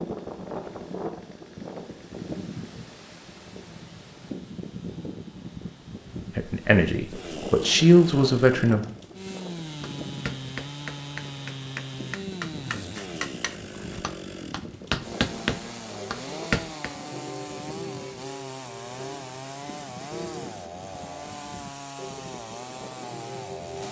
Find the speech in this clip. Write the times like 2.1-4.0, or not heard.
6.3-8.8.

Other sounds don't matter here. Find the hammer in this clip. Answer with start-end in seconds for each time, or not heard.
9.8-16.9.